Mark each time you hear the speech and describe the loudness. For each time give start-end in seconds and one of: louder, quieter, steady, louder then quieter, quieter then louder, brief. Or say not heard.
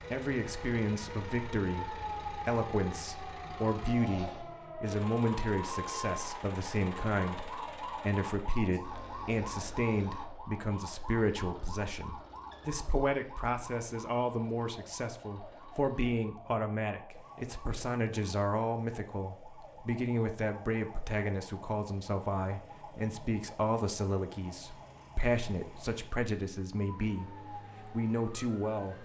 0.1-28.9 steady.